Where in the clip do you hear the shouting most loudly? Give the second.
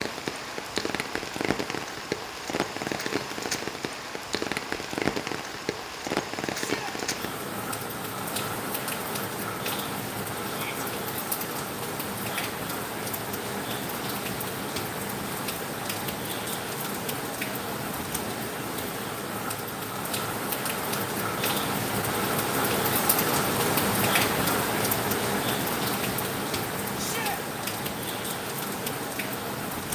27 s.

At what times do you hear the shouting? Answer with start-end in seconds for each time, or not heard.
6.5-7.0, 10.4-10.8, 26.9-27.4.